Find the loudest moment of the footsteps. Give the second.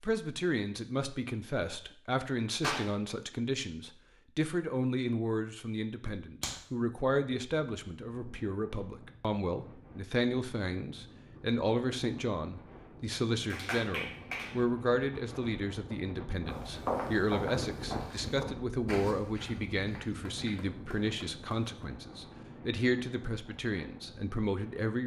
17 s.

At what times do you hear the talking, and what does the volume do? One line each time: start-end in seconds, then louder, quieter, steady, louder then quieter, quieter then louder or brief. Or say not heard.
0.0-25.0 steady.